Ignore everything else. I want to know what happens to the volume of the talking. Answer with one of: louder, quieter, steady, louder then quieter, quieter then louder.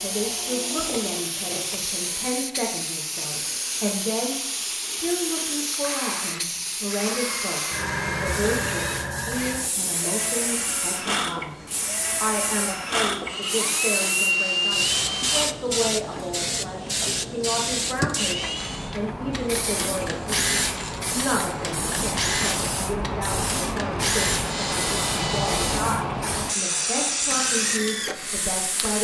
steady.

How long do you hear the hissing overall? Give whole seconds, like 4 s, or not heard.
29 s.